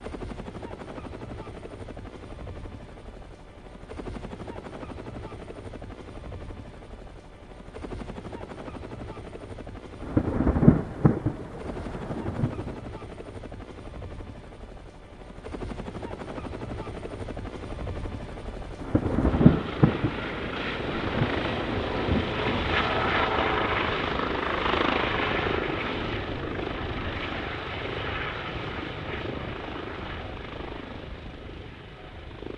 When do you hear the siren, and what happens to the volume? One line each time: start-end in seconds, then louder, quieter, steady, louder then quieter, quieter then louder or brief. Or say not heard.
not heard.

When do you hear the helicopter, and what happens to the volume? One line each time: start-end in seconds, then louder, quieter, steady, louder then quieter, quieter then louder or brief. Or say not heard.
0.0-32.5 louder then quieter.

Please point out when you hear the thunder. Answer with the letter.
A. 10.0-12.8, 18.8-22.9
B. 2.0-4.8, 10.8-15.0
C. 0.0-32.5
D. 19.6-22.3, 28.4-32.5
A.